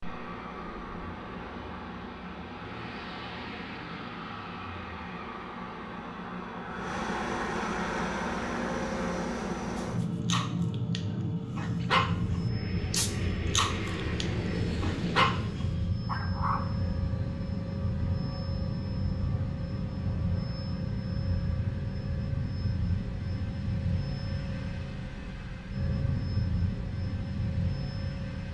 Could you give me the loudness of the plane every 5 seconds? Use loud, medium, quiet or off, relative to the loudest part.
medium, loud, loud, loud, loud, loud.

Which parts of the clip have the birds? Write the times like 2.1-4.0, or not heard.
not heard.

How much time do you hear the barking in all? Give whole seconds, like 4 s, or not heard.
7 s.